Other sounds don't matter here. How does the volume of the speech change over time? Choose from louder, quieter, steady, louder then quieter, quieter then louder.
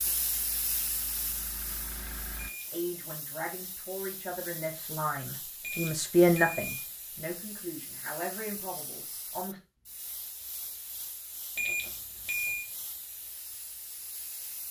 louder then quieter.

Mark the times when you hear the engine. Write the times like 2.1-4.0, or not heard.
0.0-2.5.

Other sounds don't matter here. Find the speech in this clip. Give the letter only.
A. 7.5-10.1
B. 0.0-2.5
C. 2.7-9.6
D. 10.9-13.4
C.